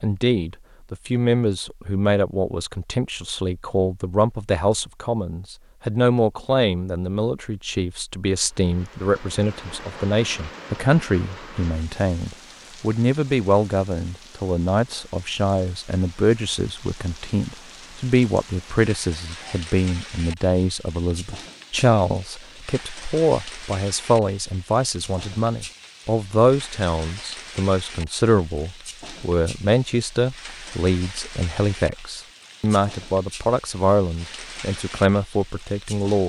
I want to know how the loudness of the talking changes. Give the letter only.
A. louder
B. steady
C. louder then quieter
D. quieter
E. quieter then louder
B.